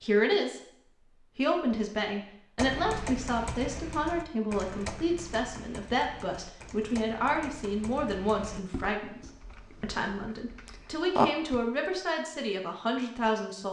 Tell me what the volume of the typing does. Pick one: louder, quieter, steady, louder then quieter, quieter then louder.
quieter then louder.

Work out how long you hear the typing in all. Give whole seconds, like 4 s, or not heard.
9 s.